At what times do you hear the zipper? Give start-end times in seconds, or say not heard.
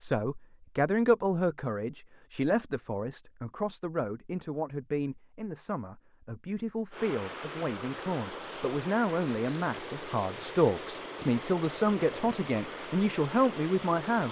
not heard.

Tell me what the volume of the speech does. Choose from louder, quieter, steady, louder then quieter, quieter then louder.
quieter then louder.